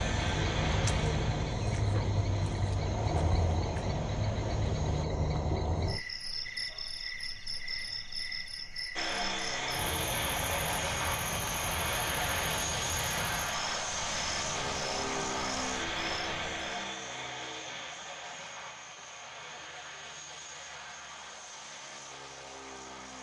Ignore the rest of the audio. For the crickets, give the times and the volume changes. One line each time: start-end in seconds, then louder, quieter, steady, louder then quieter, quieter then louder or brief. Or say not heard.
0.0-16.9 quieter.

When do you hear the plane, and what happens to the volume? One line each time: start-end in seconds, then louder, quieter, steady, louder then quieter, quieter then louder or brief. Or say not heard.
0.0-5.0 quieter
8.9-23.1 quieter.